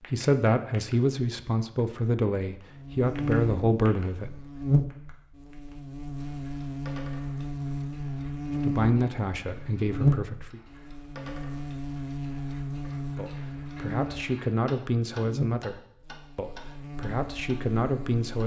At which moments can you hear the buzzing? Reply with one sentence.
The buzzing can be heard from 2.7 to 18.4 s.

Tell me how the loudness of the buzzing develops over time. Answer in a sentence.
The loudness of the buzzing goes down.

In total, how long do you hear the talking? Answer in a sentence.
You can hear the talking for 11 seconds altogether.